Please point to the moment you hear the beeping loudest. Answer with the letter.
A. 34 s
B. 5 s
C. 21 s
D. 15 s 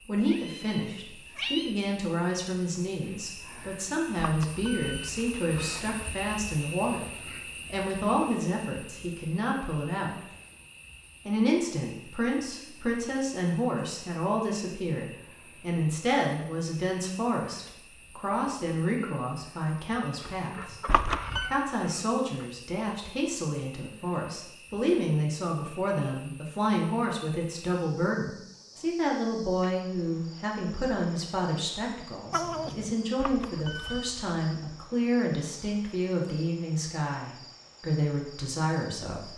C.